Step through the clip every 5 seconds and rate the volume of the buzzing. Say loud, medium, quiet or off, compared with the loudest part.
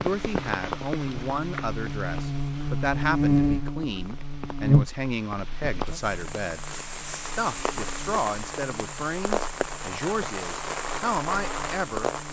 loud, quiet, quiet.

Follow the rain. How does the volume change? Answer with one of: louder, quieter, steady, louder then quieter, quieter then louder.
quieter then louder.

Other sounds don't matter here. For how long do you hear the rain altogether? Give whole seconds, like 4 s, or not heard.
12 s.